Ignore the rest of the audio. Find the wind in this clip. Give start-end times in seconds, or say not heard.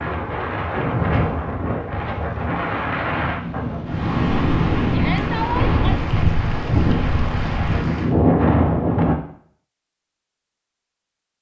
0.0-9.2.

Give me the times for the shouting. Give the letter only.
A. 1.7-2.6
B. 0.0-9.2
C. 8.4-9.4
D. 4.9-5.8
D.